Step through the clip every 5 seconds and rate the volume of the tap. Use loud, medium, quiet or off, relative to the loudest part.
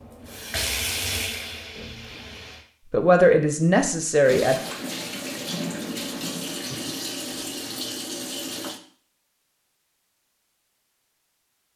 loud, loud, off.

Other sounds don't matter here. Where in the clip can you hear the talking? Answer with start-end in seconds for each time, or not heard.
2.9-4.5.